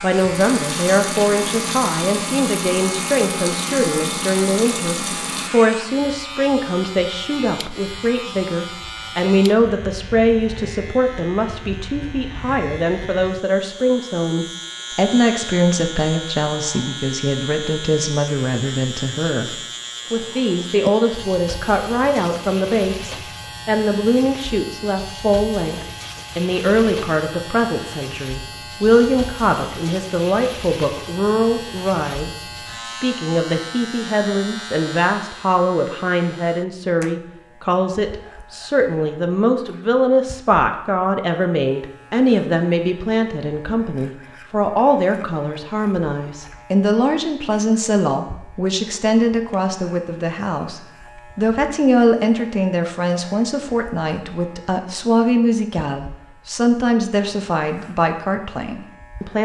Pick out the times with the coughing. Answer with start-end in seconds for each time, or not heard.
not heard.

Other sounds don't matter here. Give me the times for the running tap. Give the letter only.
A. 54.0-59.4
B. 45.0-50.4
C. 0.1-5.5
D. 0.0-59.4
C.